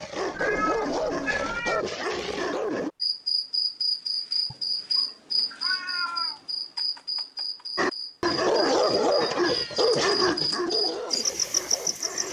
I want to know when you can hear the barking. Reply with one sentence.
The barking can be heard from 0.0 to 2.9 s and from 7.8 to 12.2 s.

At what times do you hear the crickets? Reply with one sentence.
The crickets can be heard from 3.0 to 12.2 s.